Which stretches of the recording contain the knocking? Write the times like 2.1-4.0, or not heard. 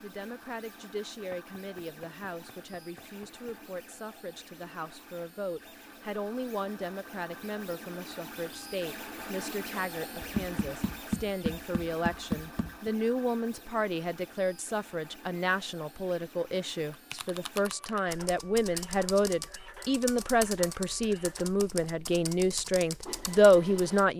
1.3-3.5, 10.2-12.9, 21.6-22.1.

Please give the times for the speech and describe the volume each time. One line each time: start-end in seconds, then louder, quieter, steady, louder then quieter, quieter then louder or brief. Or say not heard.
0.0-24.1 louder.